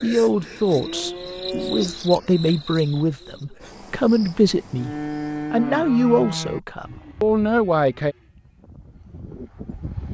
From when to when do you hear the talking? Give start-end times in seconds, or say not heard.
0.0-8.2.